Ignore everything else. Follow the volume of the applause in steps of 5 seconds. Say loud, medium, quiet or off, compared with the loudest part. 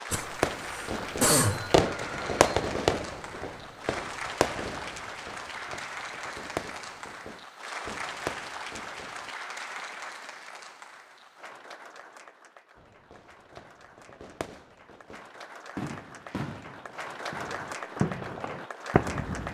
loud, loud, medium, loud.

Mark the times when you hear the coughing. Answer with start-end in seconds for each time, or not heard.
0.1-1.8.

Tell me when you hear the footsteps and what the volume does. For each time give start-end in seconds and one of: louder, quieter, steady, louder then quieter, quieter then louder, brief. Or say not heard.
not heard.